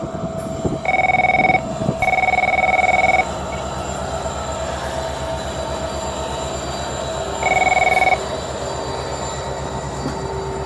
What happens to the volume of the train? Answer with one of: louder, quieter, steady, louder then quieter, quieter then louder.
steady.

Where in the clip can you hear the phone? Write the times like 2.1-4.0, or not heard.
0.8-3.5, 7.4-8.2.